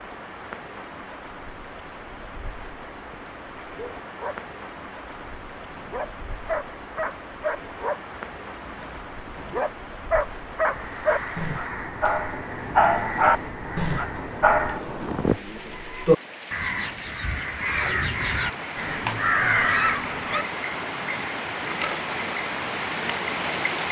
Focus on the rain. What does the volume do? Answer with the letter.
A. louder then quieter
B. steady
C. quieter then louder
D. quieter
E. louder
E.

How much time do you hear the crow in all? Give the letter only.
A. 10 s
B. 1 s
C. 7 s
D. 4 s
A.